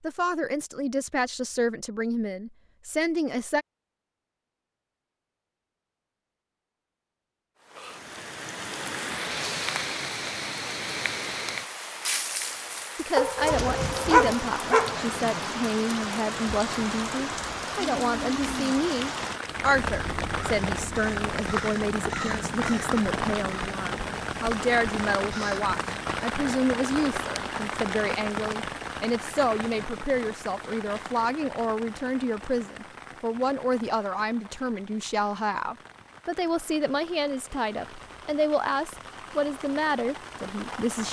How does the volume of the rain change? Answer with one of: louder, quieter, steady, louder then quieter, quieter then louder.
quieter.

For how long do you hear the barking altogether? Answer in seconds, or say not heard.
2 s.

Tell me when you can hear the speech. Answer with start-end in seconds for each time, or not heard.
0.0-3.6, 12.9-41.0.